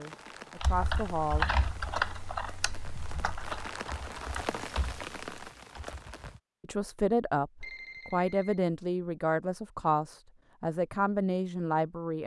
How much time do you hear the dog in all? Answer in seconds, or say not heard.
not heard.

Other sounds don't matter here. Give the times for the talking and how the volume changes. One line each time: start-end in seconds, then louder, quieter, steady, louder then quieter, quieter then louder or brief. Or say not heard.
0.0-1.4 brief
6.6-12.2 steady.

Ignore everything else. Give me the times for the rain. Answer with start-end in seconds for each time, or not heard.
0.0-6.4.